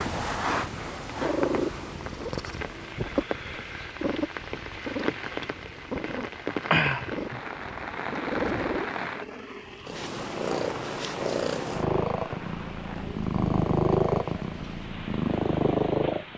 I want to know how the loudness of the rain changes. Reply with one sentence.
The volume of the rain goes up, then down.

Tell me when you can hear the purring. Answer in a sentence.
You can hear the purring from 0.0 to 16.3 s.